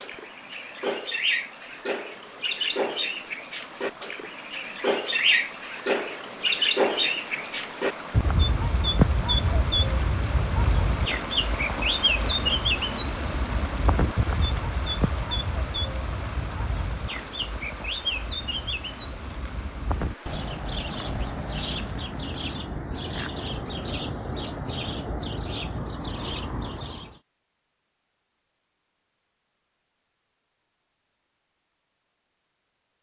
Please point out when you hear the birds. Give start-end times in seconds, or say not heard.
0.0-27.1.